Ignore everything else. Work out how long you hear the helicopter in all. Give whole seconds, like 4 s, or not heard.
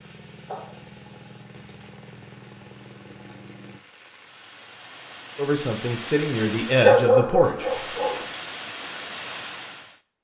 4 s.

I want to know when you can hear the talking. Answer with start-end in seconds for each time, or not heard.
5.3-7.8.